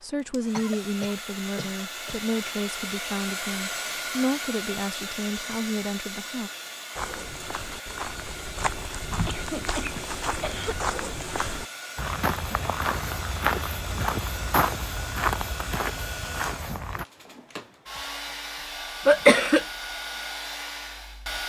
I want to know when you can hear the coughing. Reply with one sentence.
You can hear the coughing from 0.5 to 2.2 s, from 9.2 to 10.8 s and from 19.1 to 19.6 s.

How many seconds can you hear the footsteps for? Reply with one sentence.
The footsteps can be heard for 10 seconds in total.